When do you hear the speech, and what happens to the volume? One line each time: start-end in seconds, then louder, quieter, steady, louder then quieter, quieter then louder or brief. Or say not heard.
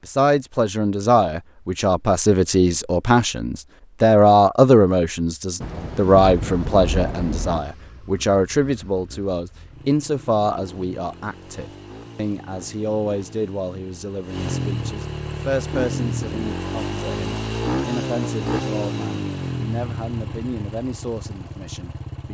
0.1-22.2 quieter.